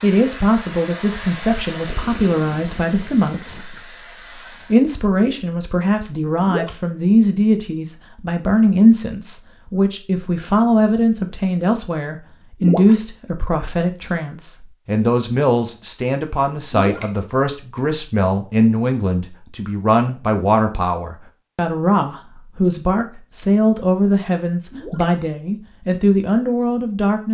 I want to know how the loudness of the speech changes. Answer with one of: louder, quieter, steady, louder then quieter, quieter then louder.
steady.